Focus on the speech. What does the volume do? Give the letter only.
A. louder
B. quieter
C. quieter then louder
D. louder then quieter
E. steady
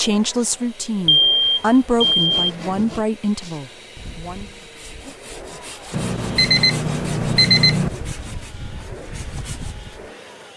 D.